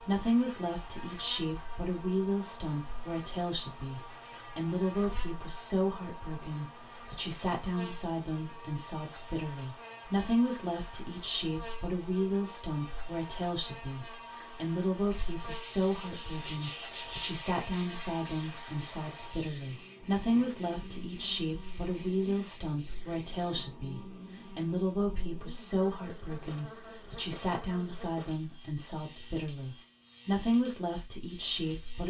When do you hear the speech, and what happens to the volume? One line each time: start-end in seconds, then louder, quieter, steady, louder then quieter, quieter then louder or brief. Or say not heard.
0.0-32.0 steady.